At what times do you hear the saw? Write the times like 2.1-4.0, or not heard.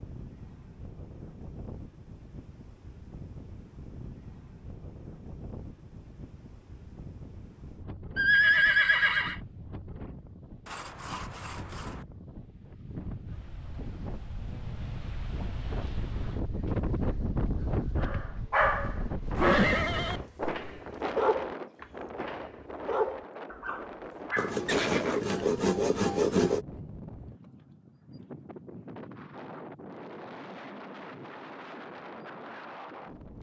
10.7-12.1, 24.4-26.6.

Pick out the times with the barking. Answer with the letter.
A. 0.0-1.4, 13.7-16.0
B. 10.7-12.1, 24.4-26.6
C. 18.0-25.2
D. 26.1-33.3
C.